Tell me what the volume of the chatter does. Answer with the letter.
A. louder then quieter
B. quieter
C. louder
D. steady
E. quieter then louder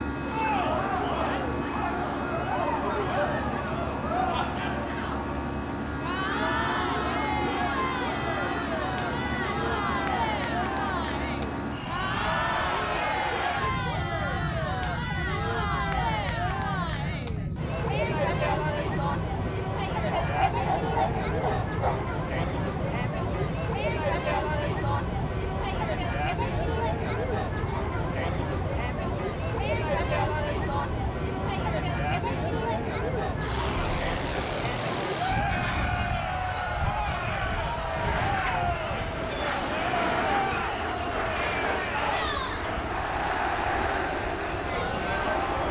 D.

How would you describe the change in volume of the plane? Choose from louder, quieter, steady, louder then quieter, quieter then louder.
steady.